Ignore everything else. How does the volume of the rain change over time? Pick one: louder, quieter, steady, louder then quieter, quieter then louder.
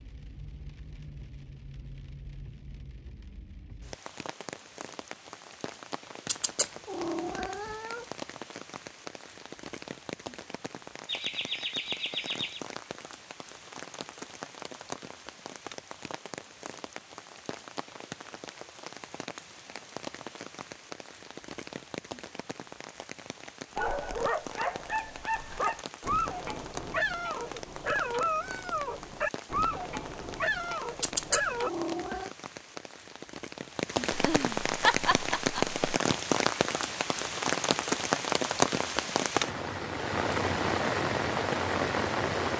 louder.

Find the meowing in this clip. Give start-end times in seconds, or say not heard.
6.2-8.1, 31.0-32.3.